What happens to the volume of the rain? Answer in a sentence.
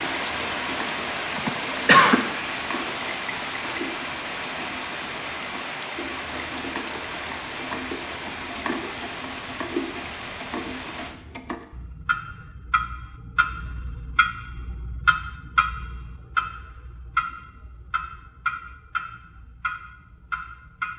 The volume of the rain goes down.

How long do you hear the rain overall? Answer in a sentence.
You can hear the rain for 11 seconds altogether.